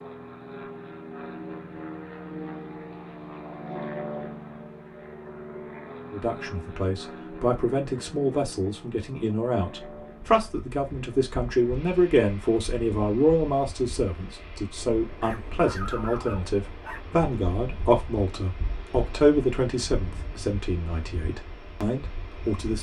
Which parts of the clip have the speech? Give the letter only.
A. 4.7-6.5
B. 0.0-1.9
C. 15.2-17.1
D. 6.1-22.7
D.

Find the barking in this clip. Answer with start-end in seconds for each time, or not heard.
15.2-17.1.